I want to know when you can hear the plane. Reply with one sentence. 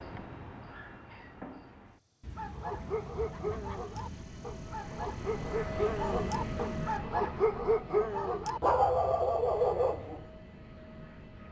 You can hear the plane from 2.7 to 11.4 s.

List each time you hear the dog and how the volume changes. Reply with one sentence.
The dog can be heard from 2.3 to 10.2 s, getting louder.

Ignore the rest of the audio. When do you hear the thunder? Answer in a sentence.
The thunder can be heard from 2.2 to 4.2 s.